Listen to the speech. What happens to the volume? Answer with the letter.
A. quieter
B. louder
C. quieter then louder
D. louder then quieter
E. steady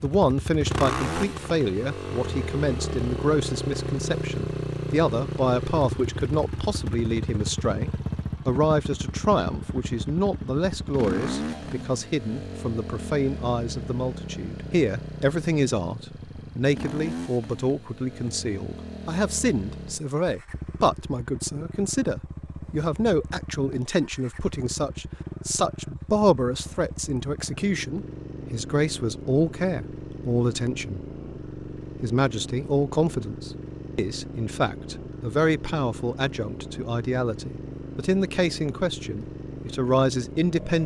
E.